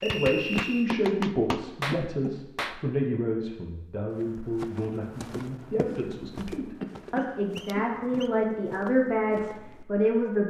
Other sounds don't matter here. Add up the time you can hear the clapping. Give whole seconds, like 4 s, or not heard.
3 s.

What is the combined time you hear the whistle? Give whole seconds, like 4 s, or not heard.
2 s.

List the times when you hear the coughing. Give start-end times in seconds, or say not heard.
0.6-2.4, 6.8-8.6.